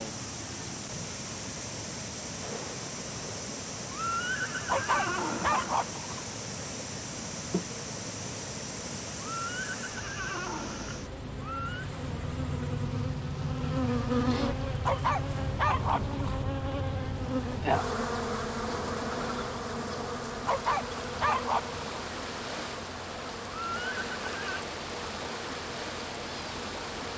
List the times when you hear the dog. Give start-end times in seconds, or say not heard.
4.7-6.3, 14.8-16.4, 20.4-22.1.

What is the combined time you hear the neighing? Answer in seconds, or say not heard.
6 s.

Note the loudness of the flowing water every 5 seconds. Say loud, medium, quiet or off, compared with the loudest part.
loud, loud, medium, medium, loud, loud.